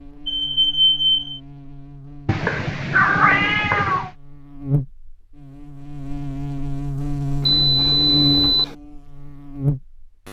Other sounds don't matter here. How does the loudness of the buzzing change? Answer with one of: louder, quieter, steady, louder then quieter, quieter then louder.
louder.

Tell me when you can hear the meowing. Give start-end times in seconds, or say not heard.
2.2-4.1.